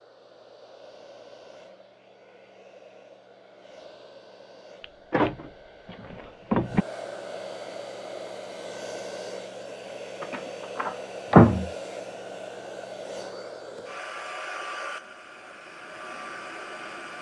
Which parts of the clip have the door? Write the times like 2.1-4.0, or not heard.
4.8-6.8, 10.2-11.7.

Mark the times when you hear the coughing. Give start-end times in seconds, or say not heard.
not heard.